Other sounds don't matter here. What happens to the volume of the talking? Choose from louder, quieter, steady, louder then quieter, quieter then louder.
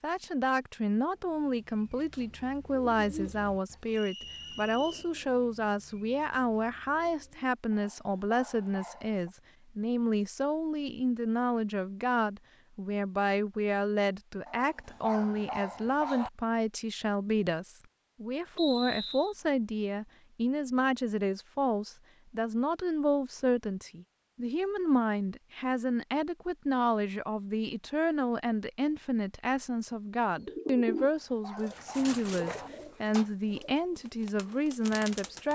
steady.